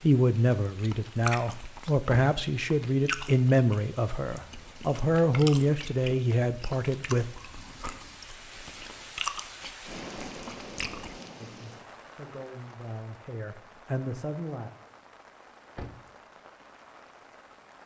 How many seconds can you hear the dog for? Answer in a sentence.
The dog can't be heard in this clip.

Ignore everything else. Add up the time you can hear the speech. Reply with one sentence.
You can hear the speech for 11 seconds altogether.